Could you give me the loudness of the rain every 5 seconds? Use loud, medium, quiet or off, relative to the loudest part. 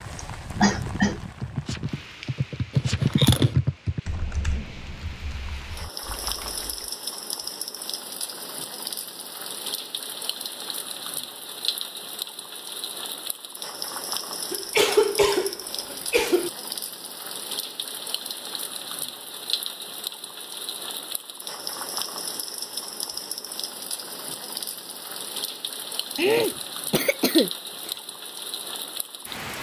medium, loud, loud, loud, loud, loud.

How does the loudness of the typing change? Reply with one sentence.
The volume of the typing goes up, then down.